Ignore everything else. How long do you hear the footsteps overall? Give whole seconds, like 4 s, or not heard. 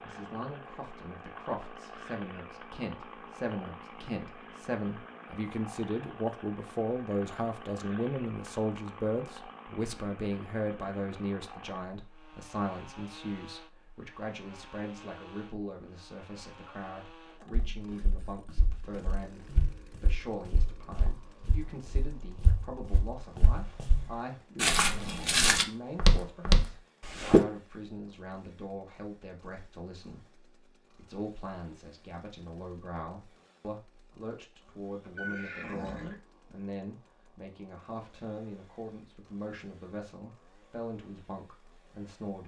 10 s.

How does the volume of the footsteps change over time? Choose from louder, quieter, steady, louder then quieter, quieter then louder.
louder.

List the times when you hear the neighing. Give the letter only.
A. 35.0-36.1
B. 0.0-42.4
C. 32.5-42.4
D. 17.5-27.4
A.